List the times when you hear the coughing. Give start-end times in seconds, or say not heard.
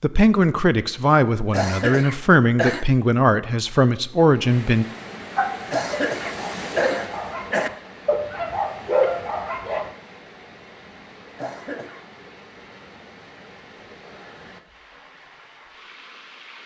1.5-2.9, 5.7-7.7, 11.3-12.1.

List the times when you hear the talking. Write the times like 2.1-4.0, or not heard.
0.0-4.8.